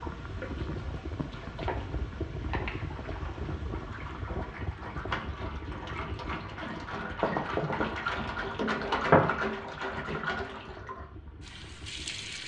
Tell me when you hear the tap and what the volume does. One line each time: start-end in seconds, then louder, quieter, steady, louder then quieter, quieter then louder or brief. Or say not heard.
0.0-12.4 louder then quieter.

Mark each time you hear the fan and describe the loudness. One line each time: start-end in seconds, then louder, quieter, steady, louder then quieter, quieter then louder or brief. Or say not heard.
0.0-12.4 quieter.